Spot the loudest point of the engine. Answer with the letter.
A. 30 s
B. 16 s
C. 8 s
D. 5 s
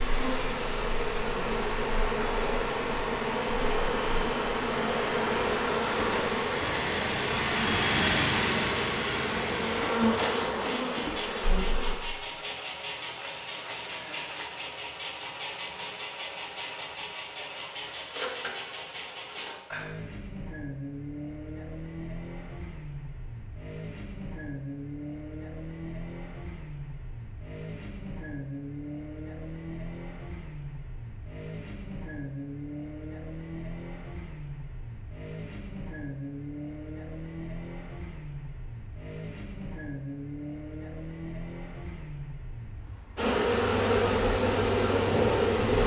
C.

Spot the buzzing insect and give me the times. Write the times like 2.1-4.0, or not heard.
0.0-11.9, 43.1-45.8.